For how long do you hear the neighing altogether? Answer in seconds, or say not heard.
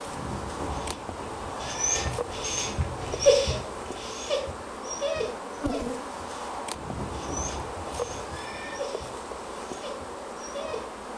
4 s.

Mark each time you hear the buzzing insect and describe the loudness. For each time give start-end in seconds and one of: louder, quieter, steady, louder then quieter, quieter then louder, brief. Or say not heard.
0.0-11.1 steady.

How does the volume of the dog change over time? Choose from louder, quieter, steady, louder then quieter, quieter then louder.
louder then quieter.